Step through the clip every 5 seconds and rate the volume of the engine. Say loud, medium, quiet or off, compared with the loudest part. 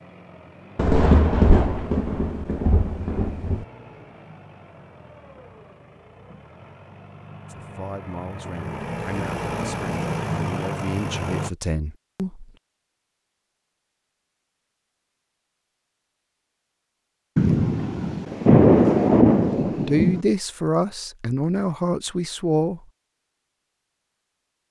quiet, medium, loud, off, off.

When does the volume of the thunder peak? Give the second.
19 s.